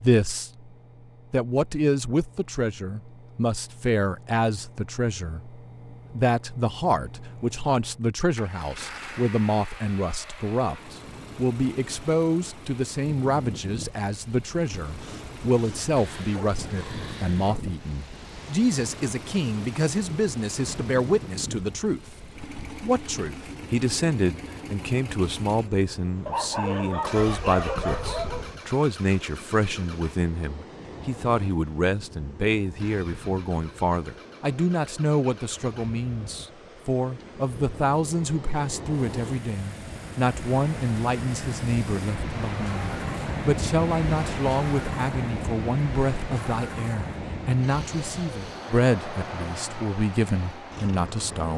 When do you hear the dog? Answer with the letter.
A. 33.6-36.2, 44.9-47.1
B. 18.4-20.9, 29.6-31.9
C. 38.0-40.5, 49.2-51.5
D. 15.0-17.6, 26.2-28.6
D.